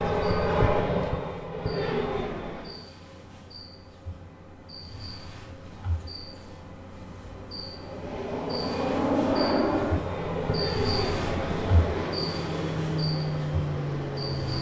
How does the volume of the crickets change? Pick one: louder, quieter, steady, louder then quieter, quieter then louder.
louder.